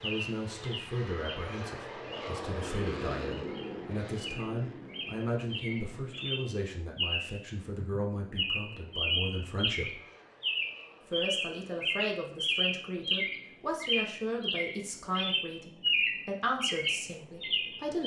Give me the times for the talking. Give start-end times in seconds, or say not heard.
0.0-10.0, 11.1-18.0.